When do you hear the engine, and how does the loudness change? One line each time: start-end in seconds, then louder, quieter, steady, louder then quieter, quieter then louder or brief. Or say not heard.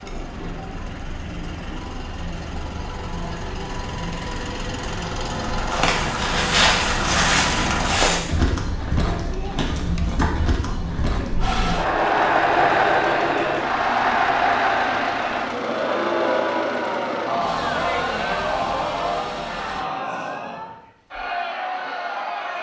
0.0-8.2 louder
11.4-19.9 quieter.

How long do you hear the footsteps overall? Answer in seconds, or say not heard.
6 s.